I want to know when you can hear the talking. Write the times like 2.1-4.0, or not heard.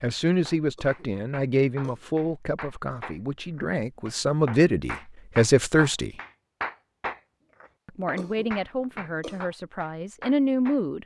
0.0-6.1, 7.8-11.0.